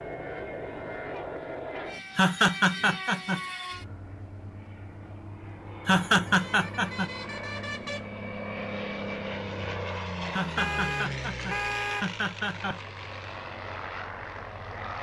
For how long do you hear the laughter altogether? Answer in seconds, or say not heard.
5 s.